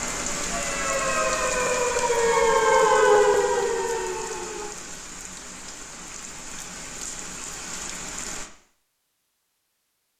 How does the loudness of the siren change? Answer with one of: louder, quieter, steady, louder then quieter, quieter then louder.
louder then quieter.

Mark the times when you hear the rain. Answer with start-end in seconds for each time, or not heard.
0.0-8.5.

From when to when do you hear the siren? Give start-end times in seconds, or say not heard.
0.0-4.8.